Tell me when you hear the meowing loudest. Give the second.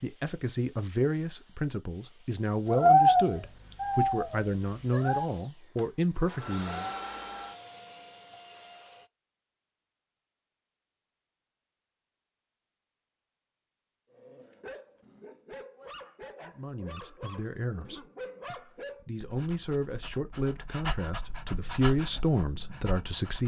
3 s.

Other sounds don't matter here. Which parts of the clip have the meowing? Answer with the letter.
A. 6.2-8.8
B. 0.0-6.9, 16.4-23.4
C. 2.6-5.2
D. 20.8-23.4
C.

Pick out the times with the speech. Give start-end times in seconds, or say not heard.
0.0-6.9, 16.4-23.4.